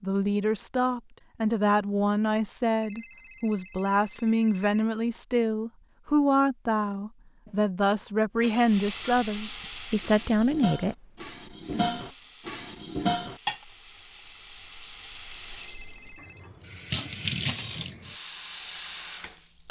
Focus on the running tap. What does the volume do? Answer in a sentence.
The loudness of the running tap goes down, then up.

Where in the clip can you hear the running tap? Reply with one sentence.
The running tap can be heard from 8.6 to 19.6 s.